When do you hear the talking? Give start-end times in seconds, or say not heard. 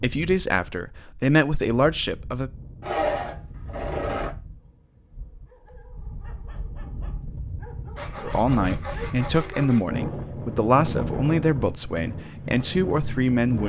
0.0-2.5, 8.2-13.6.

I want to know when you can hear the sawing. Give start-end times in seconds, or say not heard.
2.8-4.3, 8.0-9.9.